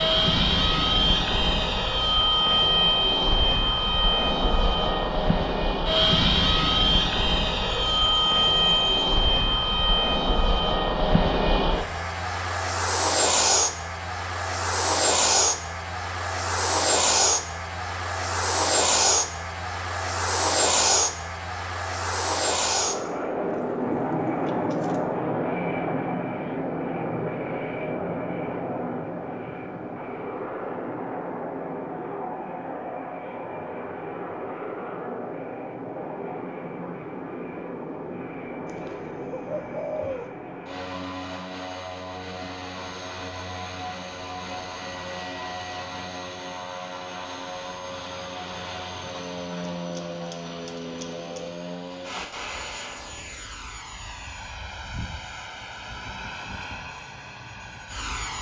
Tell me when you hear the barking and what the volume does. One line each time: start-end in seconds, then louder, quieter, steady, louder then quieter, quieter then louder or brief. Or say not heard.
not heard.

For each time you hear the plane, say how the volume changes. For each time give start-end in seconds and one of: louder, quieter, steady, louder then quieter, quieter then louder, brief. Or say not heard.
0.0-58.3 quieter.